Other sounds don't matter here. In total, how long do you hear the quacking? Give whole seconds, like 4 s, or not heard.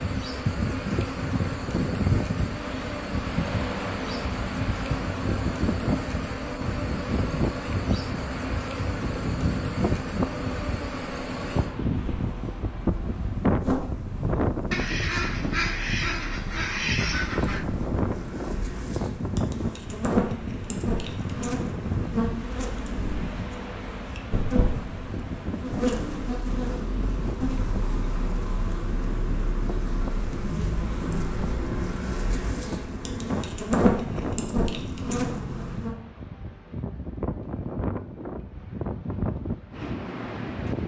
3 s.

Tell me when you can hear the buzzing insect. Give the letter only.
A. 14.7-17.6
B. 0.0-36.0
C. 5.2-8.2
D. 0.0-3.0
B.